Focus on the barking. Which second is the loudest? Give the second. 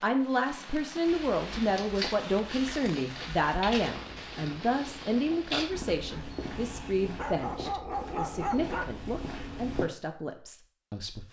8 s.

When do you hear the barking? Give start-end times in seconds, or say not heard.
5.7-9.2.